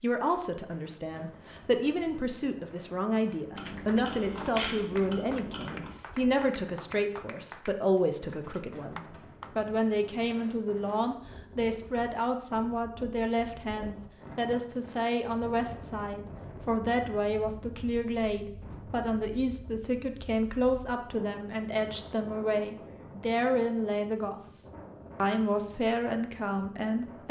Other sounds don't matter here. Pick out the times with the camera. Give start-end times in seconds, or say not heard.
3.5-6.0.